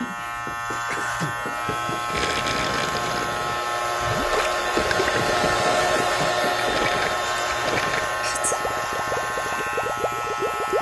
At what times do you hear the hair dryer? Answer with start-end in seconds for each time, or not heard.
0.0-10.7.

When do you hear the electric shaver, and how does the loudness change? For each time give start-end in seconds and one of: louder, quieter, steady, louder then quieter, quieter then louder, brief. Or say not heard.
0.0-10.7 steady.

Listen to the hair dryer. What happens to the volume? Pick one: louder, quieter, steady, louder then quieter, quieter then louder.
louder then quieter.